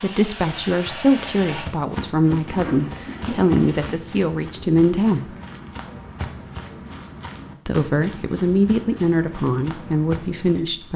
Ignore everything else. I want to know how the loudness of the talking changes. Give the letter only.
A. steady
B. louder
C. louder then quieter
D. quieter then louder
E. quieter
A.